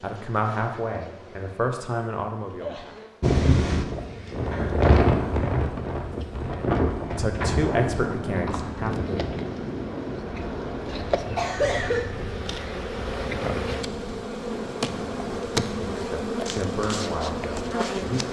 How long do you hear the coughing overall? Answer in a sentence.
The coughing can be heard for 2 seconds in total.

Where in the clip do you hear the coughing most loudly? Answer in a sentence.
The loudest moment of the coughing is at 12 seconds.